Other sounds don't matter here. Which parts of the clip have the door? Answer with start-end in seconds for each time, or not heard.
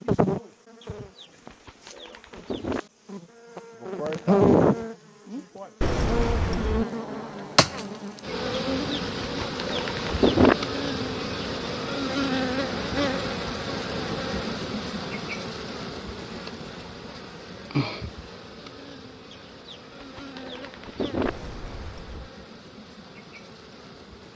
5.8-6.8, 21.2-22.3.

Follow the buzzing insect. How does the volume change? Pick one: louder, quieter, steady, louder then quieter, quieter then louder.
quieter.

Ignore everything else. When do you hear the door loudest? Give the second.
6 s.